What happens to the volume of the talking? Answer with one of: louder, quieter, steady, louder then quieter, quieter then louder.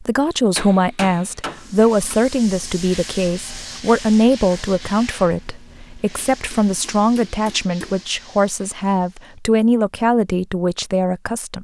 steady.